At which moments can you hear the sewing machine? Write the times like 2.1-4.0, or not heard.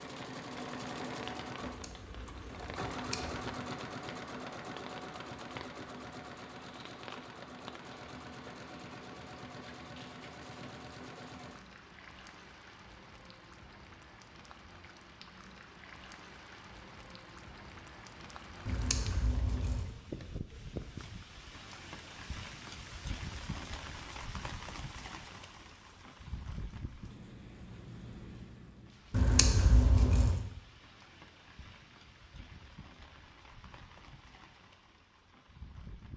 0.0-11.7.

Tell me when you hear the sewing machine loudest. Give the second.
3 s.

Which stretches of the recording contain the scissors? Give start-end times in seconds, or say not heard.
1.6-3.5, 18.6-19.9, 29.1-30.4.